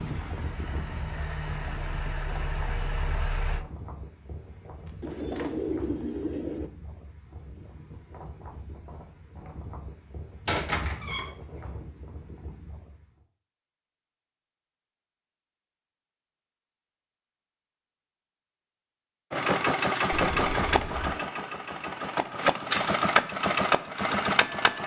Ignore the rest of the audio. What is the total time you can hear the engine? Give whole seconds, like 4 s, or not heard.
9 s.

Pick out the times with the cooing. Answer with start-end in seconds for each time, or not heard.
5.0-6.7.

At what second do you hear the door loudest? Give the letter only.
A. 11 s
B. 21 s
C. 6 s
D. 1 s
A.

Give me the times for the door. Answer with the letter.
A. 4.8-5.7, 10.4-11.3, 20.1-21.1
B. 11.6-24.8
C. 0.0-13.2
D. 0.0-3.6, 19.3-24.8
A.